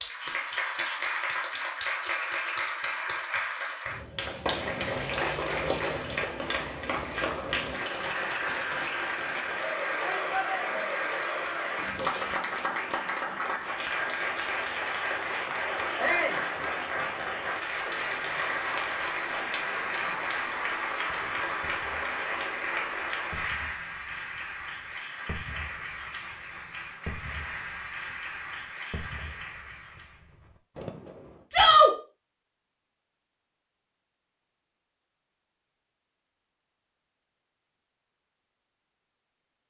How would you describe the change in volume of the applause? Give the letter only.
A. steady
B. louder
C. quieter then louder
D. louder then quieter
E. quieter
E.